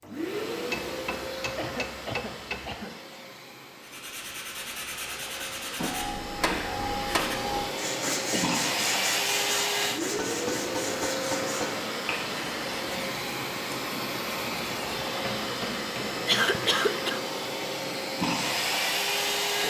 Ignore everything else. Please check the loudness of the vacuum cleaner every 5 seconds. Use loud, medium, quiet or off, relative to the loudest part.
medium, loud, loud, loud.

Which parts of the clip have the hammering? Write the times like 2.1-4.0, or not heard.
0.7-2.7, 5.8-7.8, 10.0-11.9, 15.1-16.6.